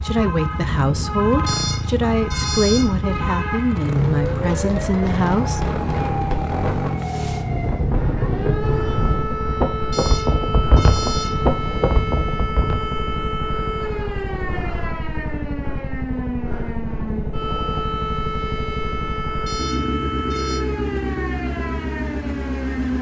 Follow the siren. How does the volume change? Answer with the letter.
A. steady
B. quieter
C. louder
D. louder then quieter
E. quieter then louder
A.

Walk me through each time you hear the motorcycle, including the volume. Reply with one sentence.
You can hear the motorcycle from 0.0 to 22.9 s, at a steady volume.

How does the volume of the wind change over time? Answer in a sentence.
The loudness of the wind goes up.